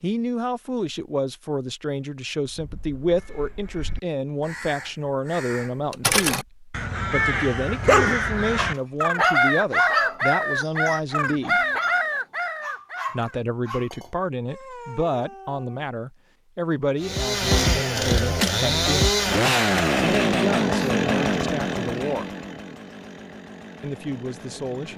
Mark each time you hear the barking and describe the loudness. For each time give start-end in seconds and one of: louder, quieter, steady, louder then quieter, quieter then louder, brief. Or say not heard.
7.8-15.8 quieter.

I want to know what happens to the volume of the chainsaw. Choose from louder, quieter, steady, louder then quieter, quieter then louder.
quieter.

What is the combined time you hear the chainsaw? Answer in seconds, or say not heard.
8 s.